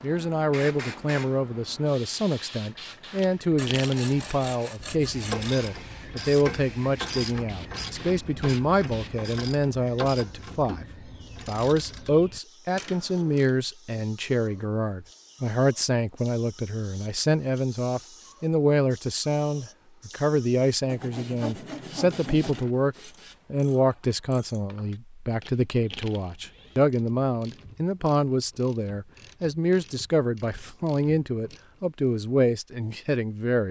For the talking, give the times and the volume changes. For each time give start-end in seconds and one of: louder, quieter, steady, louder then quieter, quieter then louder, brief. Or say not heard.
0.0-10.8 steady
11.4-33.6 steady.